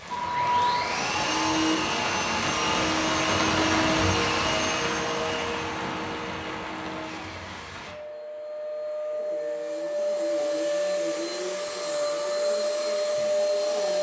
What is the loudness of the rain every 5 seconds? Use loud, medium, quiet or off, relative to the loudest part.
loud, medium, off.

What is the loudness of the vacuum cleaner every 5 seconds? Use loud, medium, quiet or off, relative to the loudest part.
loud, medium, loud.